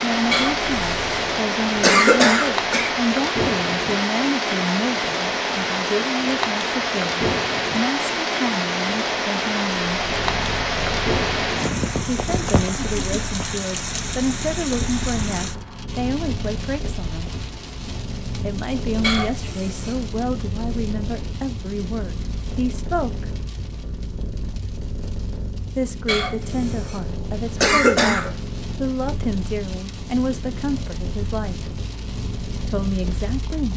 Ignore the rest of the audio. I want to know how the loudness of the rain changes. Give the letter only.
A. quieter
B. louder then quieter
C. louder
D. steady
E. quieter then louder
A.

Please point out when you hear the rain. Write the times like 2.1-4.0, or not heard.
0.0-33.7.